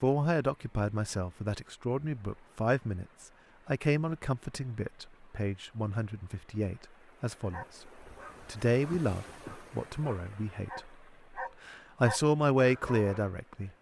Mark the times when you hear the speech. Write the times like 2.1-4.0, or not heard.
0.0-7.8, 8.4-10.9, 11.7-13.7.